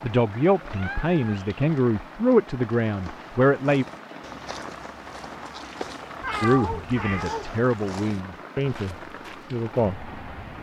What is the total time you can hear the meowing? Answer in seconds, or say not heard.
2 s.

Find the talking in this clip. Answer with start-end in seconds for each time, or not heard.
0.0-3.9, 6.4-10.1.